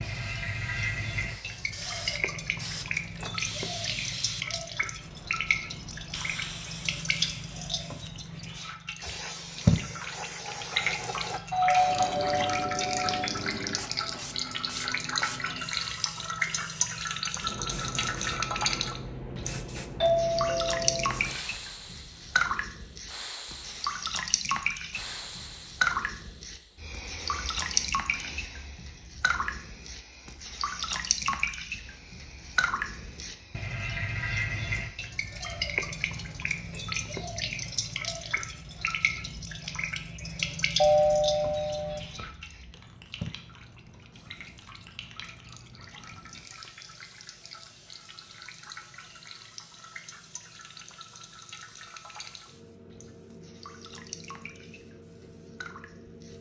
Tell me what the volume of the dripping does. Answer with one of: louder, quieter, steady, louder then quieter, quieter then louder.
quieter.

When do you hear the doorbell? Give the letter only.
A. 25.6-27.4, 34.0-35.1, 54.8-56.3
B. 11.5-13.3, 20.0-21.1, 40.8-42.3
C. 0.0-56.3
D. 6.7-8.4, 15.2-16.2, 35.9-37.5
B.